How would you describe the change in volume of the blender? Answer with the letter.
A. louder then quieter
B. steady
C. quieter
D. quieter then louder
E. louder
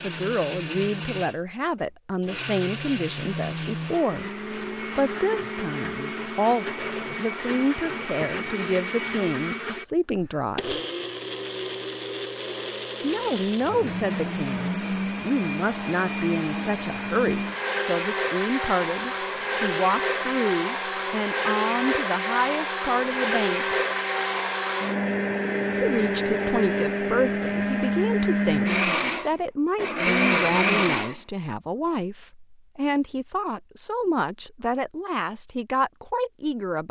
E.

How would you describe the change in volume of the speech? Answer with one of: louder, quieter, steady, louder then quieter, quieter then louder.
steady.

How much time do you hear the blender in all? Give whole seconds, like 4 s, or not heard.
31 s.